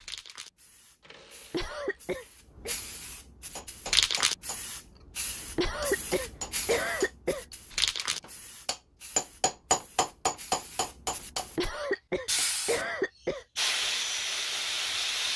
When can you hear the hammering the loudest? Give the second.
10 s.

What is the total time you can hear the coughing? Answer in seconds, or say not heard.
5 s.